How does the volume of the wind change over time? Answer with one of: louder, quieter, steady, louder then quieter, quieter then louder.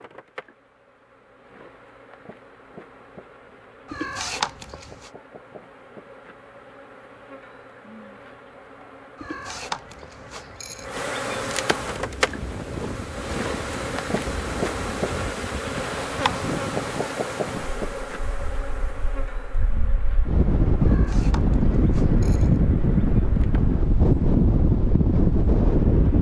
quieter then louder.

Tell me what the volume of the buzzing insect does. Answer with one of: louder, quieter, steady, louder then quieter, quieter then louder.
louder then quieter.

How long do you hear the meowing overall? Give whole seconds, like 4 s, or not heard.
5 s.